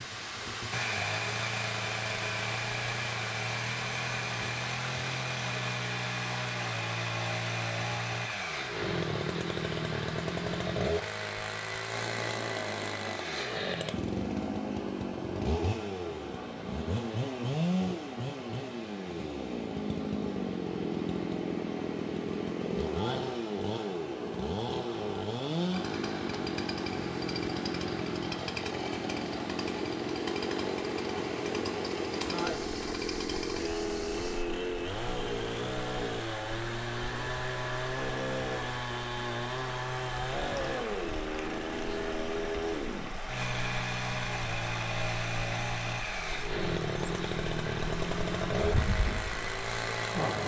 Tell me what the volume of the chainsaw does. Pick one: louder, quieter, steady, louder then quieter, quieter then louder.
steady.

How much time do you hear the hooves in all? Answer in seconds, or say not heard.
not heard.